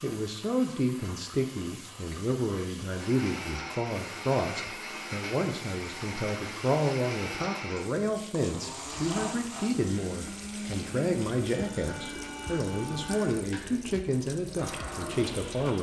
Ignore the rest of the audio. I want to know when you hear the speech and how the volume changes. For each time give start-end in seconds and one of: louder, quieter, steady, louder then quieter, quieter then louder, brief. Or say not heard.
0.0-15.7 steady.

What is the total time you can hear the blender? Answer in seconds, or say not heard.
13 s.